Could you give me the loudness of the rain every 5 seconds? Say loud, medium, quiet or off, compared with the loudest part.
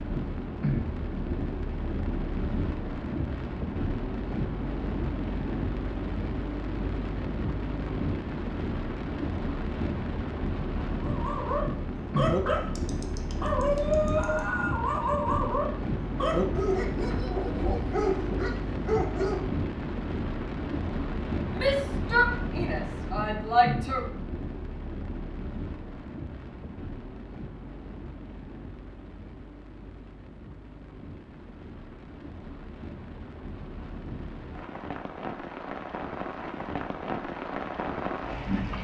loud, loud, loud, loud, loud, medium, medium, loud.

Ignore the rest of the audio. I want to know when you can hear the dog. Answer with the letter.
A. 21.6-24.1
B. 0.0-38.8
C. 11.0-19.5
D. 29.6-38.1
C.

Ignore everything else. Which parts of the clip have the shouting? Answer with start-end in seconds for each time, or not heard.
21.6-24.1.